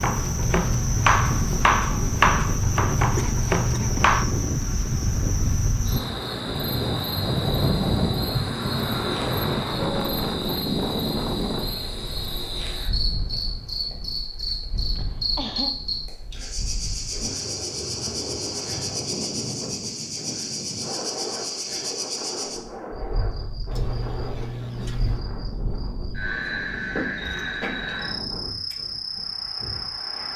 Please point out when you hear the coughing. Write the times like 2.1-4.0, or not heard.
3.0-4.1, 14.8-15.7, 23.7-25.2.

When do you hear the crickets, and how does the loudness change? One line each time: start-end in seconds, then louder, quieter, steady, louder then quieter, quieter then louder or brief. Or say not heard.
0.0-30.3 steady.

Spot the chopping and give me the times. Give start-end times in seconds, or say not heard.
0.0-4.2.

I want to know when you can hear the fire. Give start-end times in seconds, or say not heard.
not heard.